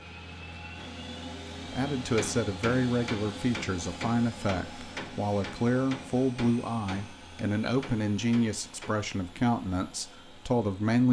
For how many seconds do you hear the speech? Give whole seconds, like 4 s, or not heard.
9 s.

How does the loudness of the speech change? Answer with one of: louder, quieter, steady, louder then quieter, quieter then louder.
steady.